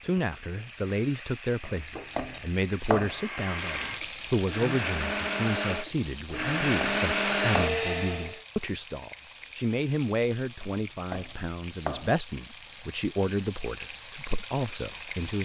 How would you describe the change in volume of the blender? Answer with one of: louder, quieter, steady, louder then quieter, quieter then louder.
louder.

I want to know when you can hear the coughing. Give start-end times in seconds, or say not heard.
not heard.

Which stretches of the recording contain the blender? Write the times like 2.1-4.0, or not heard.
3.0-8.4.